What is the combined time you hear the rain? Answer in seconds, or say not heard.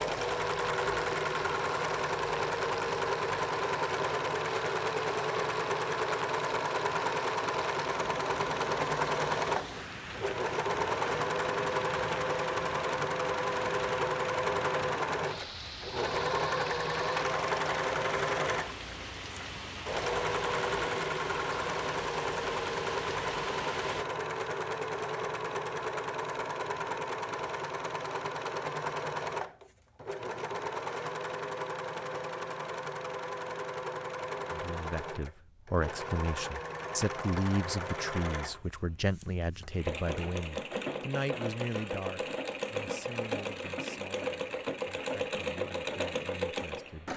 24 s.